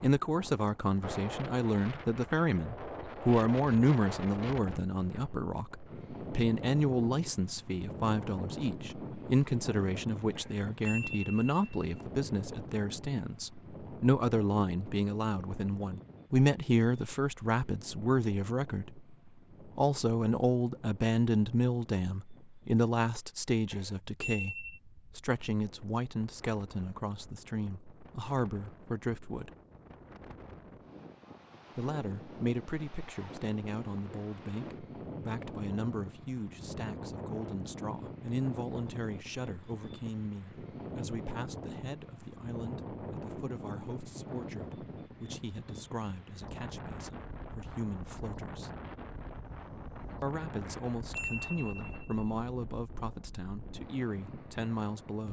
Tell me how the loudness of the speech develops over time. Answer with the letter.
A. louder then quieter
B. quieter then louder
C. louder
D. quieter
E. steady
D.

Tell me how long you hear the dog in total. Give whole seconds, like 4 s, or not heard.
not heard.